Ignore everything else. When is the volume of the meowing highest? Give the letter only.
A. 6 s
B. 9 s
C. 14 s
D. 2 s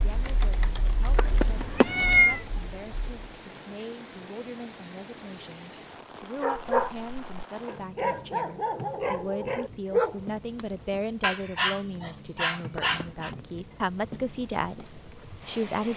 D.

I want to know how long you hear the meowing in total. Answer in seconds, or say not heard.
2 s.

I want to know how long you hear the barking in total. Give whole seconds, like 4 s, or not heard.
7 s.